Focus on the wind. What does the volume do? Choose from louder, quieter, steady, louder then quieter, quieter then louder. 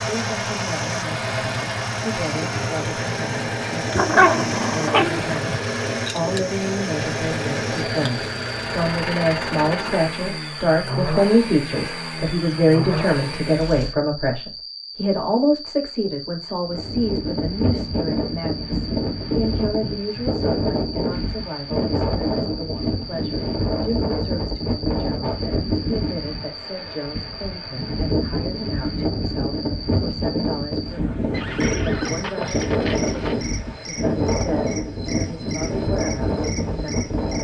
steady.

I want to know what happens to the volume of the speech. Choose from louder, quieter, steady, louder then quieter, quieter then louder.
louder then quieter.